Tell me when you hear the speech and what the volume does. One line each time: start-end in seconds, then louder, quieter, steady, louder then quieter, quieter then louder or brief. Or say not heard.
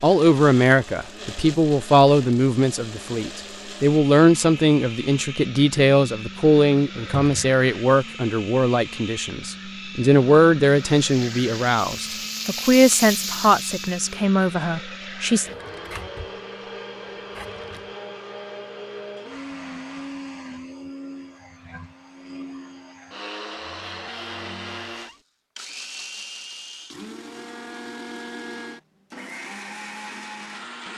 0.0-15.4 steady.